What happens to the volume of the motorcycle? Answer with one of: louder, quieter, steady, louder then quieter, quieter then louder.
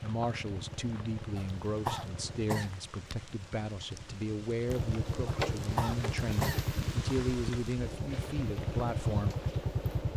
quieter then louder.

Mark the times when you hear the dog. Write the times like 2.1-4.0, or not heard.
not heard.